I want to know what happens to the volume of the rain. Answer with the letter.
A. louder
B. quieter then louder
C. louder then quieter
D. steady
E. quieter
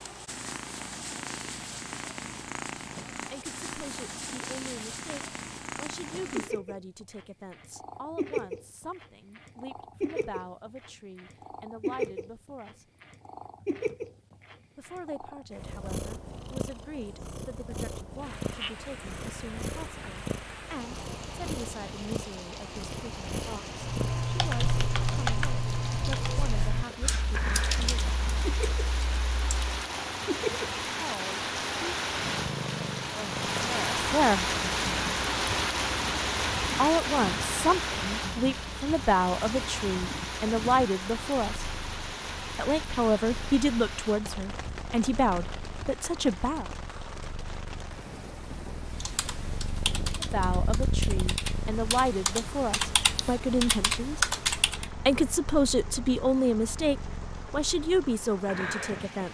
C.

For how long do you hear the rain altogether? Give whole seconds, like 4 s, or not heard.
41 s.